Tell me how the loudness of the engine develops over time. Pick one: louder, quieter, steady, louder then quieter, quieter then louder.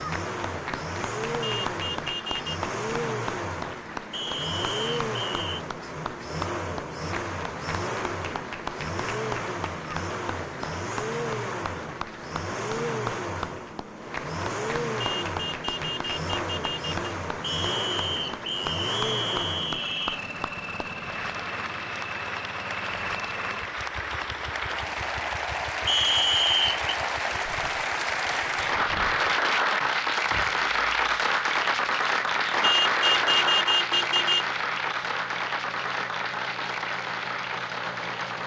quieter.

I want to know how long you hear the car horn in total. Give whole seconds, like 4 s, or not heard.
5 s.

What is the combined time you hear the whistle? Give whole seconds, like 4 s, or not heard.
5 s.